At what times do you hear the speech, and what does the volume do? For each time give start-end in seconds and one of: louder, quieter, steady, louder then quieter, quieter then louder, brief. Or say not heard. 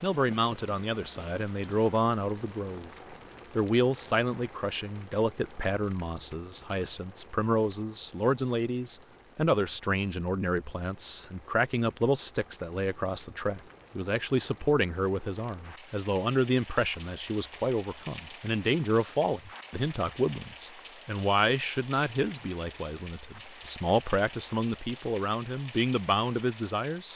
0.0-2.9 brief
3.5-27.1 steady.